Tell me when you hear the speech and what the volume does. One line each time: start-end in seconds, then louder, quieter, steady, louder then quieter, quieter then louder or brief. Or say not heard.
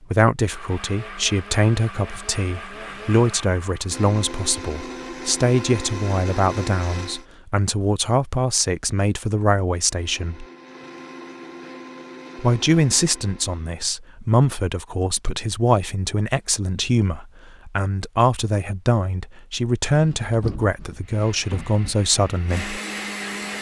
0.0-10.4 steady
12.3-22.8 steady.